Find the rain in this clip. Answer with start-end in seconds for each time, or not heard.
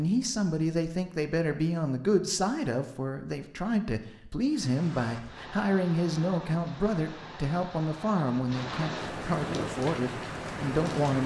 4.4-11.2.